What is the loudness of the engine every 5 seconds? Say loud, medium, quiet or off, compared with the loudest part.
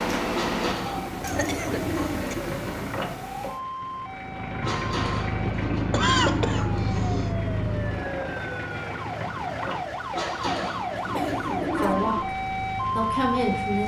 medium, loud, medium.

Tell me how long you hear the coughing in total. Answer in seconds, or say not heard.
4 s.